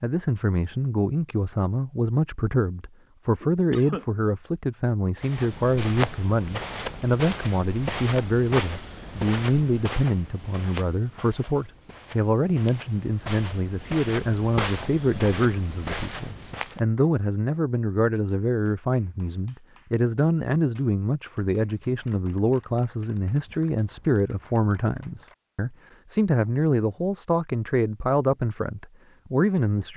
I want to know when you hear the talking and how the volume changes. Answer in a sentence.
The talking can be heard from 0.0 to 29.9 s, at a steady volume.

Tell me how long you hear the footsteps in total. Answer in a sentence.
You can hear the footsteps for 12 seconds altogether.